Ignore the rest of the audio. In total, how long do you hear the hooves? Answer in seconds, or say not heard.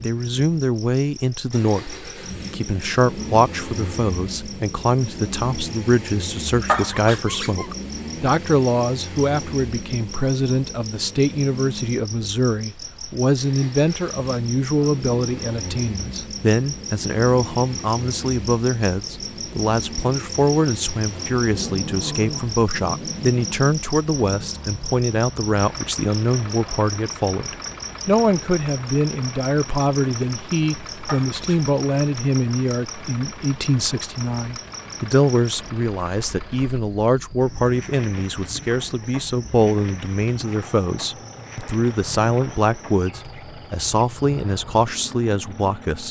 not heard.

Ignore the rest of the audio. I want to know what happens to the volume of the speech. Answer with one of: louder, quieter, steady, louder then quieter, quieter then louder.
steady.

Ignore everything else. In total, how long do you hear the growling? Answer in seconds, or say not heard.
4 s.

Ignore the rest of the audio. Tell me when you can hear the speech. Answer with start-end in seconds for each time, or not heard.
0.0-46.0.